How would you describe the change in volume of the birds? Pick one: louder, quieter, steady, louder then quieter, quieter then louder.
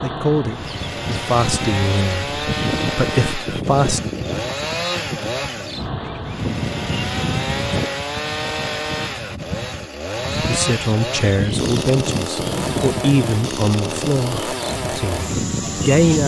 steady.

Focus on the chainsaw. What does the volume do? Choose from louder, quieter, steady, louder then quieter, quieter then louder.
steady.